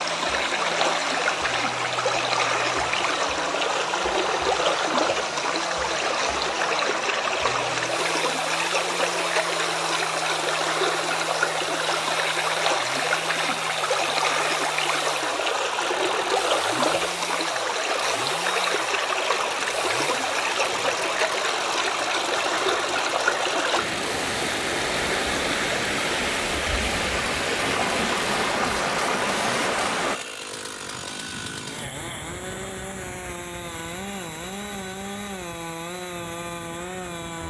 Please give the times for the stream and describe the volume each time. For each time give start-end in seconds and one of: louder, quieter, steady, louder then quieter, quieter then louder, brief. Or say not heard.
0.0-30.2 steady.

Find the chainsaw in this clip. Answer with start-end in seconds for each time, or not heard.
0.0-37.4.